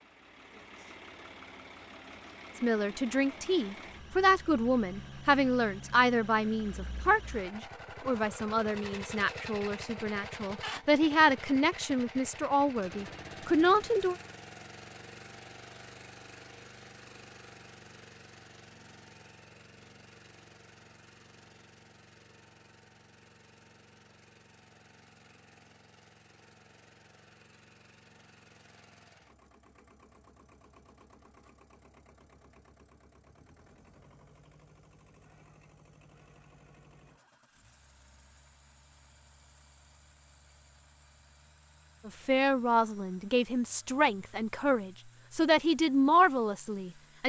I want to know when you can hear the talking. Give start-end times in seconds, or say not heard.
2.6-14.2, 42.0-47.2.